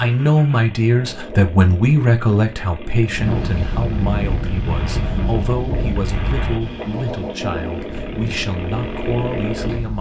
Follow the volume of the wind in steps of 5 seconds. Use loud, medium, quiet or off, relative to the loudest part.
loud, medium.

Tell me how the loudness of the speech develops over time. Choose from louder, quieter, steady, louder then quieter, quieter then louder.
quieter.